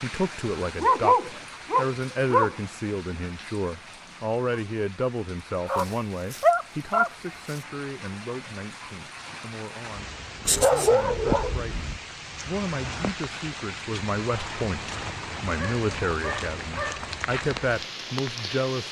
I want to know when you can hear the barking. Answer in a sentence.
You can hear the barking from 0.8 to 2.5 s, from 5.7 to 7.6 s, from 10.4 to 12.0 s and from 15.4 to 17.1 s.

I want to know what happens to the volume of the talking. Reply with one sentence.
The volume of the talking goes down, then up.